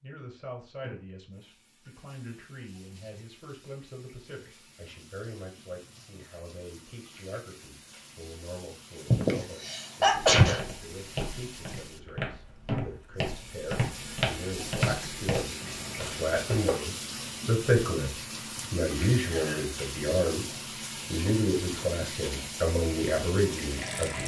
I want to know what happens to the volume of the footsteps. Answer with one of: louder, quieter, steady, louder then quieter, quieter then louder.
louder then quieter.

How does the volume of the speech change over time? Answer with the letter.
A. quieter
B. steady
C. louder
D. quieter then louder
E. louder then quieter
C.